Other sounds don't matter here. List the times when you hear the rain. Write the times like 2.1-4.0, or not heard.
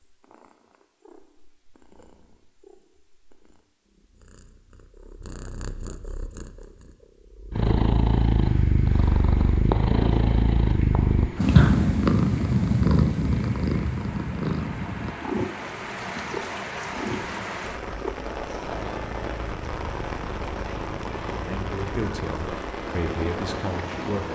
8.4-24.3.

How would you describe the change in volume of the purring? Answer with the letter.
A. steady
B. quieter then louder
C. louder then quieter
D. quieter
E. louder
C.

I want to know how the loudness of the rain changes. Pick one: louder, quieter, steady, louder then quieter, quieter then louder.
louder.